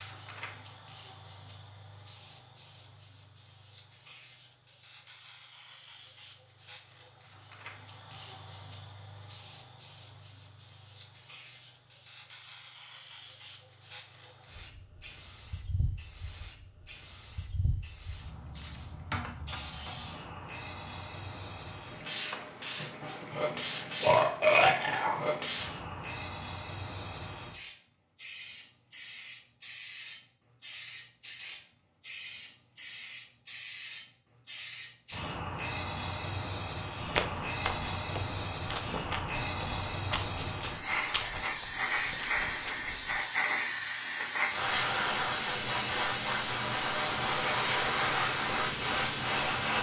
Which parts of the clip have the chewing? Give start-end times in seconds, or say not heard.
37.0-43.2.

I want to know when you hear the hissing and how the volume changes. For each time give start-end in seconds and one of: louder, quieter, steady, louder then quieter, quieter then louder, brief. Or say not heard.
0.0-49.7 louder.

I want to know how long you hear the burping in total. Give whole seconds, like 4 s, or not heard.
2 s.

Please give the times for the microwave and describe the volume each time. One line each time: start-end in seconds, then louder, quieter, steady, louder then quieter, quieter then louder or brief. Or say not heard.
not heard.